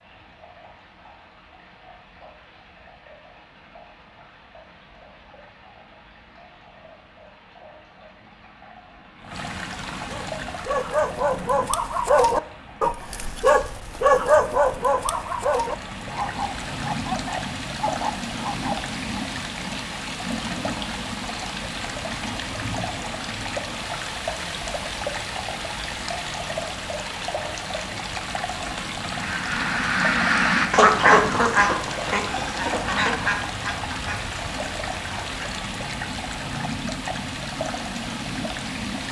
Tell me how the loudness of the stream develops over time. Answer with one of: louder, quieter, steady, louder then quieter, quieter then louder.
louder.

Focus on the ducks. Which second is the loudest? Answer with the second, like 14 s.
31 s.